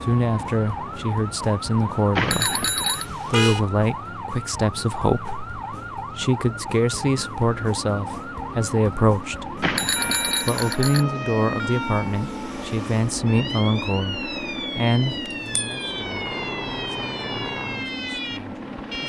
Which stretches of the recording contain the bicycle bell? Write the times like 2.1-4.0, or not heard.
2.1-3.0, 9.6-11.1, 15.1-16.1.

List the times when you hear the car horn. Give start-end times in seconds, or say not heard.
3.0-3.6.